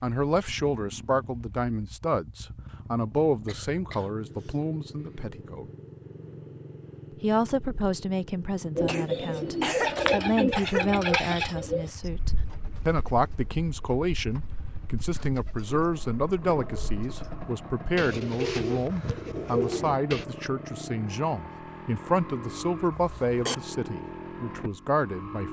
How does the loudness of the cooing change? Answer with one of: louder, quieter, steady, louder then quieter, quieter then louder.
quieter then louder.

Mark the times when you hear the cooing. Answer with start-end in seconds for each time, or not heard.
8.8-20.2.